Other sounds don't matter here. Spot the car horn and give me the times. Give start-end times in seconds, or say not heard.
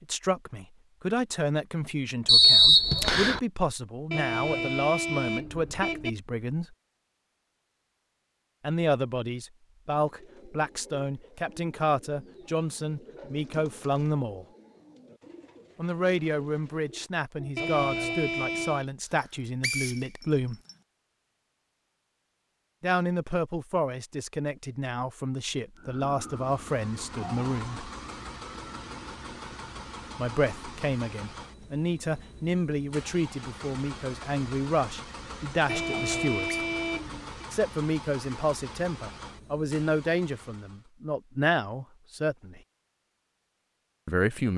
4.1-6.1, 17.6-18.9, 35.6-37.5.